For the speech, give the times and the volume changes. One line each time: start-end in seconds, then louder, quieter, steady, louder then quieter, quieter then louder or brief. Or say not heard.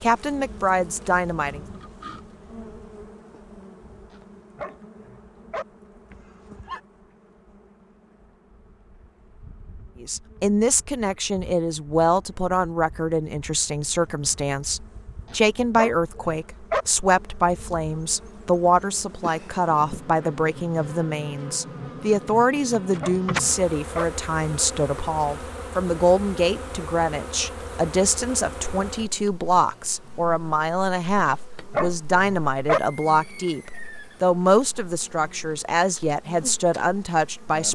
0.0-1.6 brief
10.0-37.7 steady.